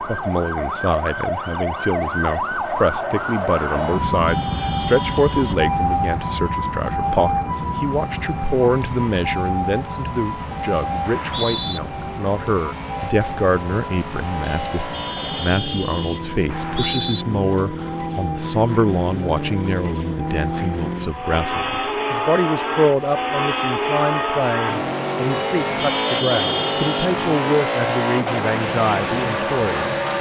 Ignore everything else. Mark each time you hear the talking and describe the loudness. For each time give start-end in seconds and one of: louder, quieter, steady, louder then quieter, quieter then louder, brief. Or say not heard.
0.1-29.9 steady.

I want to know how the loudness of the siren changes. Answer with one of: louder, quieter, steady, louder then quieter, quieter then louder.
quieter.